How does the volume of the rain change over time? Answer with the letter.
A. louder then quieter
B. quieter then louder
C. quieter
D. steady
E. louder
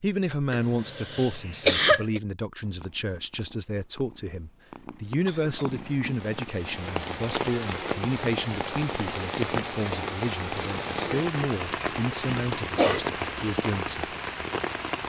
D.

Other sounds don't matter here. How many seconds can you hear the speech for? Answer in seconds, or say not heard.
14 s.